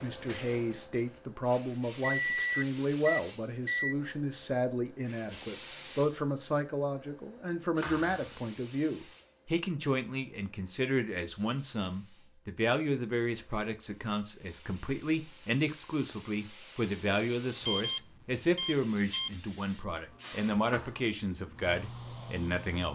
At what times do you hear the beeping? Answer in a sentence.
The beeping can be heard from 2.2 to 4.0 s and from 17.6 to 19.4 s.